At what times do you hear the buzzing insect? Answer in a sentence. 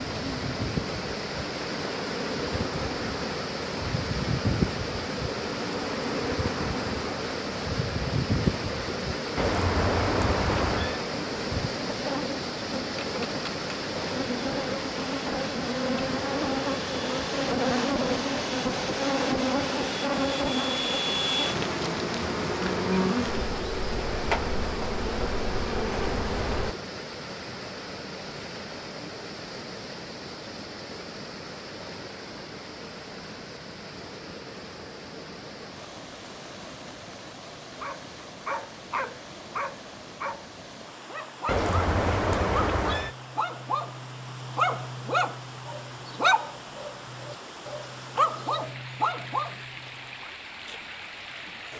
You can hear the buzzing insect from 0.1 to 26.8 s.